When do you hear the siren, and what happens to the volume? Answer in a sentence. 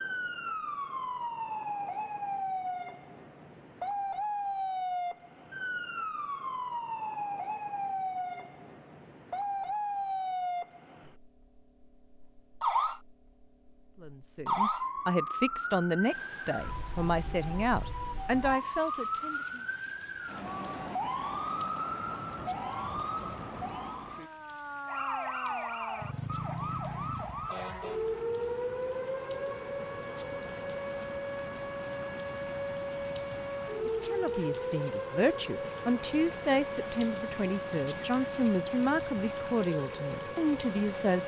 The siren can be heard from 0.0 to 41.2 s, at a steady volume.